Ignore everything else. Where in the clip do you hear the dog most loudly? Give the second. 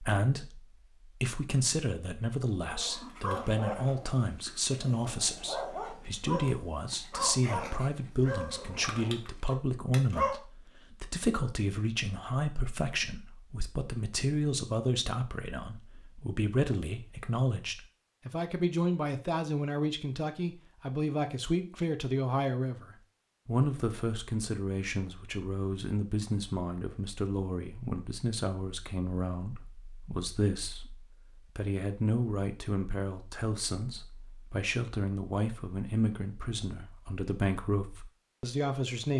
10 s.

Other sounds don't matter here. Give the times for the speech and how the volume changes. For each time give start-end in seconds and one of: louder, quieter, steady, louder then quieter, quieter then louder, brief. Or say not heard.
0.0-39.1 steady.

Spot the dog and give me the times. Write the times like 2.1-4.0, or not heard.
2.6-10.4.